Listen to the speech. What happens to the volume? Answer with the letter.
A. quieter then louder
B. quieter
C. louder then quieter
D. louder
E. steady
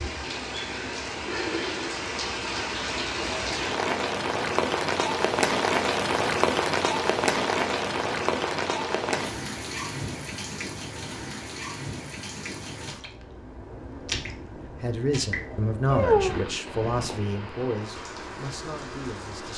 B.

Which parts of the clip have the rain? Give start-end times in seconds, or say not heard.
0.0-19.5.